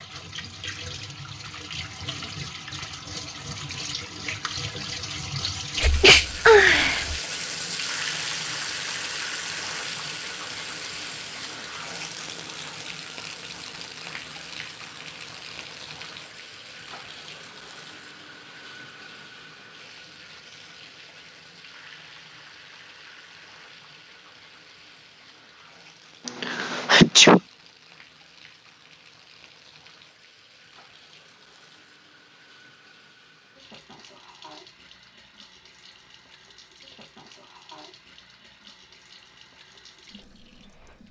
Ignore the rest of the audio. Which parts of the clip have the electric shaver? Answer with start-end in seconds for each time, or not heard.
not heard.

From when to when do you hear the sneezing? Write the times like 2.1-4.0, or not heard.
5.8-7.2, 26.2-27.4.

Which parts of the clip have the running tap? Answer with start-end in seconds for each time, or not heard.
0.0-41.0.